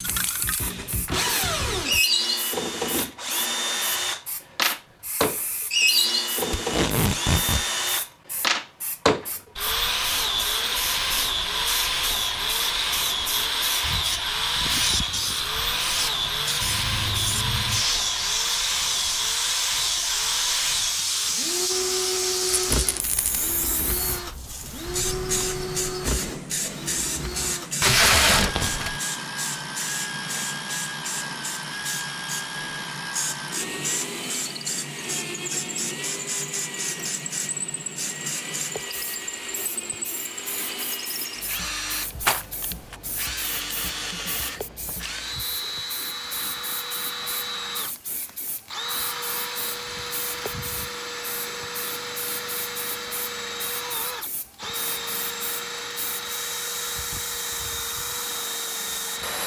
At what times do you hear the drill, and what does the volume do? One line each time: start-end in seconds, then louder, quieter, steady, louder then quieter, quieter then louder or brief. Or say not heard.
0.0-59.4 quieter.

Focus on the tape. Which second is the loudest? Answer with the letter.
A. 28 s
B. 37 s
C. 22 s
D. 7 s
A.